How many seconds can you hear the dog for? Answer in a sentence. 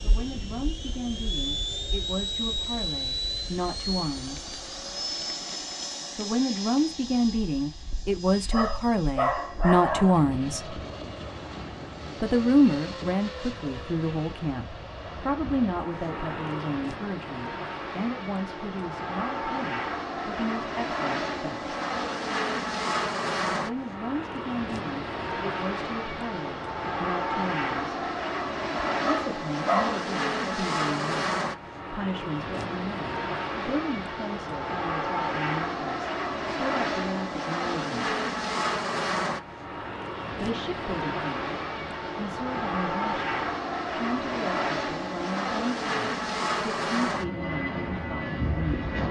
The dog can be heard for 3 seconds in total.